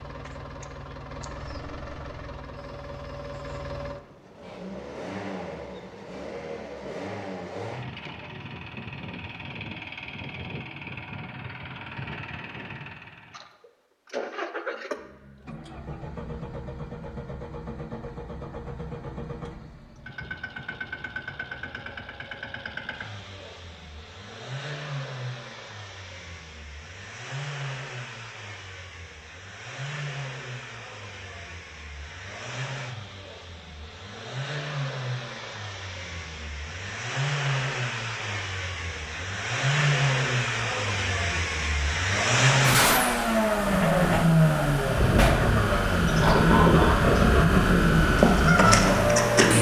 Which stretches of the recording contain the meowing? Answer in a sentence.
The meowing can't be heard in this clip.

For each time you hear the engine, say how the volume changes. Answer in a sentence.
The engine can be heard from 0.0 to 49.5 s, getting louder.